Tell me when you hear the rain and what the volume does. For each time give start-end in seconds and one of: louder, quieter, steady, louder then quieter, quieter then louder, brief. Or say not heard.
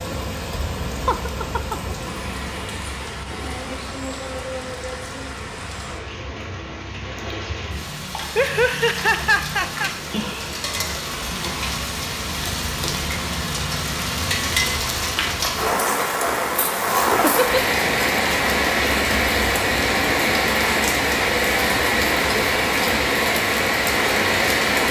0.0-24.8 louder.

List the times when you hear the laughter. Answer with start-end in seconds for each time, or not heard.
1.1-2.5, 8.3-9.9, 17.2-17.8.